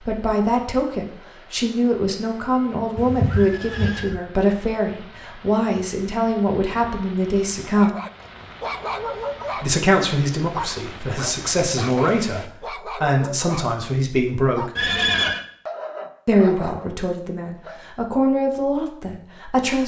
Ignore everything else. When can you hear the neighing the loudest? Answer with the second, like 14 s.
15 s.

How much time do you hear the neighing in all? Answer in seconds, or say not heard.
2 s.